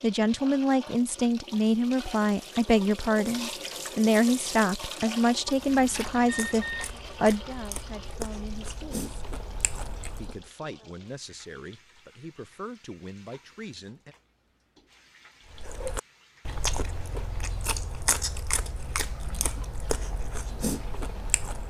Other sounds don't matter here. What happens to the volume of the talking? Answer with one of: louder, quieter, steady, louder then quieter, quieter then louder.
quieter.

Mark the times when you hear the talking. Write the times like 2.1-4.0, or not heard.
0.0-9.1, 10.2-14.2.